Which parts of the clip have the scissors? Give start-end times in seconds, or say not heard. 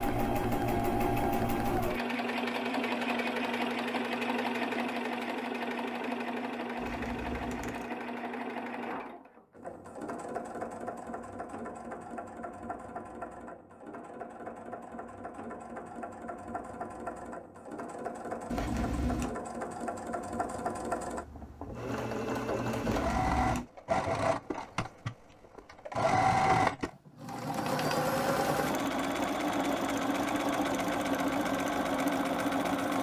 6.8-7.9, 18.4-19.4, 22.8-23.6.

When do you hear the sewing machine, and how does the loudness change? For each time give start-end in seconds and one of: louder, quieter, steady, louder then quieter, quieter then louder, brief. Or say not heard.
0.0-32.9 quieter then louder.